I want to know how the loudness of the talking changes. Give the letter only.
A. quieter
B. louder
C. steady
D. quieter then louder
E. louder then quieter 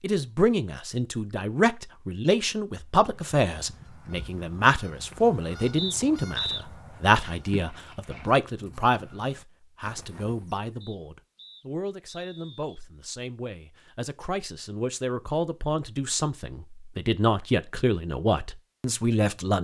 D.